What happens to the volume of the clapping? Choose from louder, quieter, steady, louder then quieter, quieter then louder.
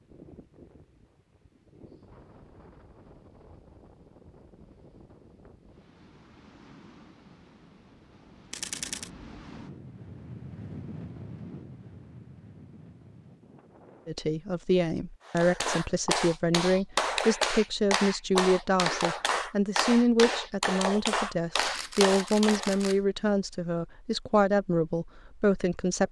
steady.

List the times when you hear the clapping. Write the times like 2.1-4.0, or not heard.
15.2-22.9.